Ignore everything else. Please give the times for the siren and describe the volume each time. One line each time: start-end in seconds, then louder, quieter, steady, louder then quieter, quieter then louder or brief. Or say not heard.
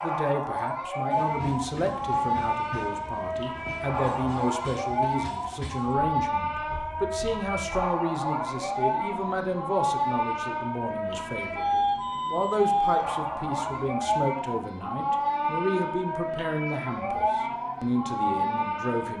0.0-19.1 steady.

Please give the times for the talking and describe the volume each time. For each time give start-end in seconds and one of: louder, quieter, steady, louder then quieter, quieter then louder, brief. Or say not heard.
0.0-19.1 steady.